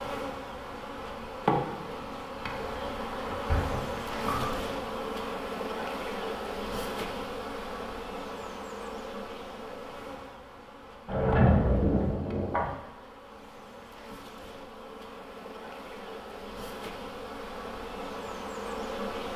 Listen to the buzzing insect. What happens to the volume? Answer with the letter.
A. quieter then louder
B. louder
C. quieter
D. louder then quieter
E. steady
A.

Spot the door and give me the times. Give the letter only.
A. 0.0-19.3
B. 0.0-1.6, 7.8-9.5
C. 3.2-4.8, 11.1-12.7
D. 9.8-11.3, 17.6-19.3
C.